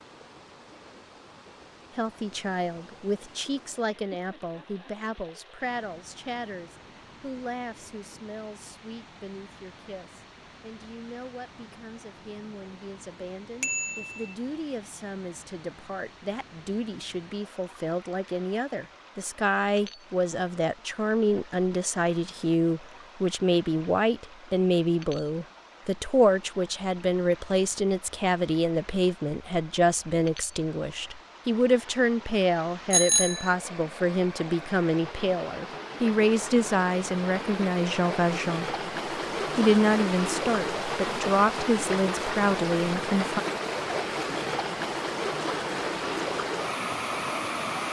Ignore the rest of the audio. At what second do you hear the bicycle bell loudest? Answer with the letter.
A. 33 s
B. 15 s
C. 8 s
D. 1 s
A.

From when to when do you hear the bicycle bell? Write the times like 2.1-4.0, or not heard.
13.6-14.3, 32.9-33.5.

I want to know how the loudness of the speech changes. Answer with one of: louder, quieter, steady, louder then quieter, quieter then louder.
louder.